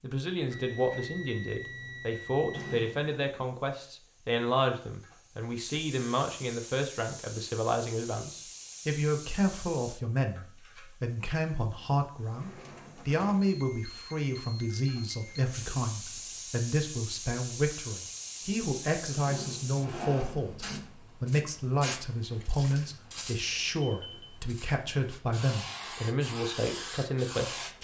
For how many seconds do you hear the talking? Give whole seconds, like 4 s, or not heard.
28 s.